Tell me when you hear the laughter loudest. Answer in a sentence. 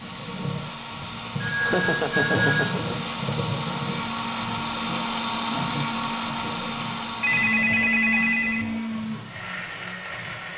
The loudest moment of the laughter is at 2 seconds.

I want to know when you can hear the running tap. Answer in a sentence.
The running tap can be heard from 0.0 to 10.5 s.